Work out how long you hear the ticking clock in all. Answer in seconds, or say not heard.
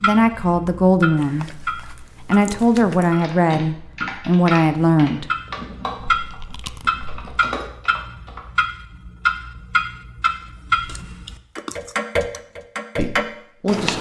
14 s.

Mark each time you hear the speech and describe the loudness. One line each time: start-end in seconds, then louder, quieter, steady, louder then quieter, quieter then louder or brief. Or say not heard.
0.0-5.2 quieter then louder
12.9-13.9 brief.